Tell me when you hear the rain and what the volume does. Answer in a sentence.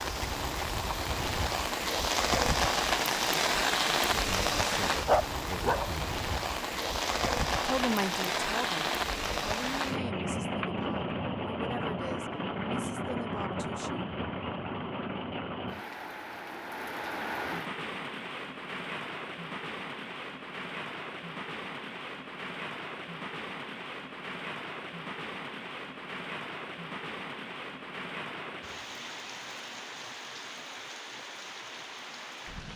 The rain can be heard from 0.0 to 32.7 s, getting quieter.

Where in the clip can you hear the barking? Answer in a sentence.
You can hear the barking from 5.0 to 6.0 s.